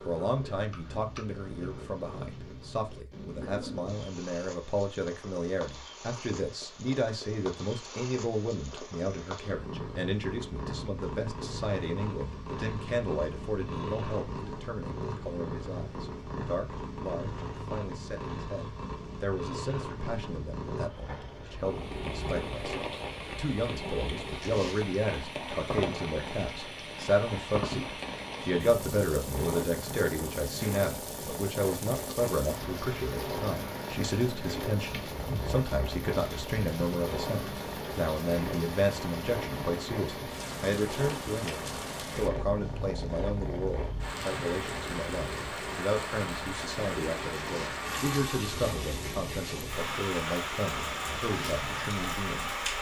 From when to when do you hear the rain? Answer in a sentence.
The rain can be heard from 21.6 to 52.7 s.